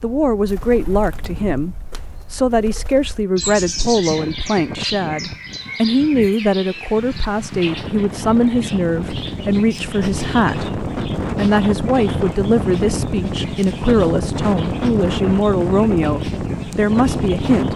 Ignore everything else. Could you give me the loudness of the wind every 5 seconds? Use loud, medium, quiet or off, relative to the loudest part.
medium, medium, loud, loud.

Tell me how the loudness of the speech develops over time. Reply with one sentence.
The loudness of the speech stays about the same.